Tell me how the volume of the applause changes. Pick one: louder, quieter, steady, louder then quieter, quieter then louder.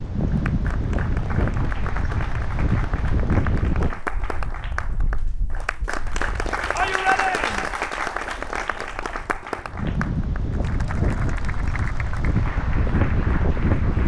louder then quieter.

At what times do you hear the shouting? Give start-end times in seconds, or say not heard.
6.7-7.8.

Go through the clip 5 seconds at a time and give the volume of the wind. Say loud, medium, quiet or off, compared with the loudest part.
loud, medium, loud.